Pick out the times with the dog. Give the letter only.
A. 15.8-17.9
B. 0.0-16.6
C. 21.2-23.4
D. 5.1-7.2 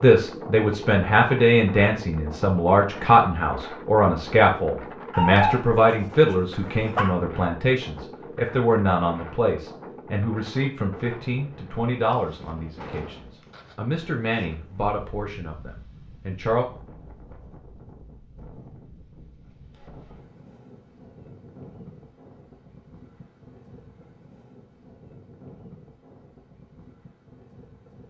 D.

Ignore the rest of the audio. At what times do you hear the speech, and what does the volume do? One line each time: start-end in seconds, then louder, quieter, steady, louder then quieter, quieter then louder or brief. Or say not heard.
0.0-16.6 quieter.